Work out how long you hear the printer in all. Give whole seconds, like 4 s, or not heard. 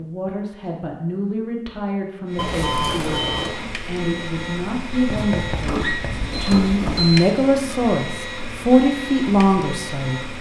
8 s.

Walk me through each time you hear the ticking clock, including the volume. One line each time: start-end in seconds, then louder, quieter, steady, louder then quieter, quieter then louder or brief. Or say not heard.
not heard.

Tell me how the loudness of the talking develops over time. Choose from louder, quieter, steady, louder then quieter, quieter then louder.
louder.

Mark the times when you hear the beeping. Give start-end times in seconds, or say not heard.
2.4-3.6, 6.3-7.3.